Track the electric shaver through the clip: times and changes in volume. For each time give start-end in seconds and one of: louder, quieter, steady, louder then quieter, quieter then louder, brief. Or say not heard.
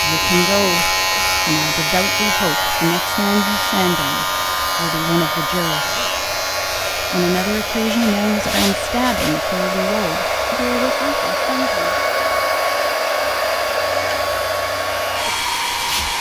0.0-16.1 quieter.